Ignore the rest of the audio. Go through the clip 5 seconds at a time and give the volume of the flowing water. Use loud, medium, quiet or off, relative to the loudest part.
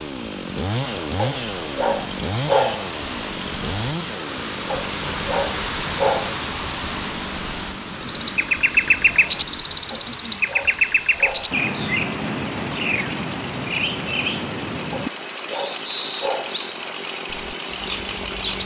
loud, loud, medium, medium.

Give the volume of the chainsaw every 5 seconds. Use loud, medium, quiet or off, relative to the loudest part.
loud, medium, medium, loud.